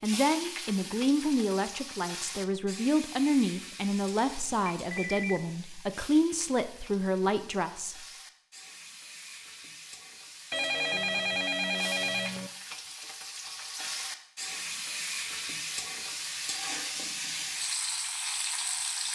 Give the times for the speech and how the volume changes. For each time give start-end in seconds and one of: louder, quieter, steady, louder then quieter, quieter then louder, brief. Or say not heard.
0.0-8.1 steady.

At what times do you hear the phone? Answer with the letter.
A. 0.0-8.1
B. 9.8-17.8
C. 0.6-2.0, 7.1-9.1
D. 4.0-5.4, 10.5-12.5
D.